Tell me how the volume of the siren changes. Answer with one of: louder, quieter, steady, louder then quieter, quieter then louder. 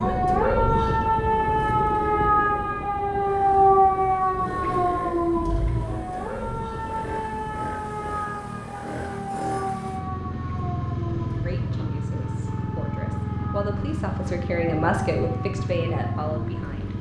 quieter.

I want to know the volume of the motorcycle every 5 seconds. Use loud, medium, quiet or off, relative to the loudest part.
medium, medium, loud, loud.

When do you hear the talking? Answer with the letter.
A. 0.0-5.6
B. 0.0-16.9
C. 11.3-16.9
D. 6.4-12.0
C.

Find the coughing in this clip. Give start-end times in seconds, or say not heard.
not heard.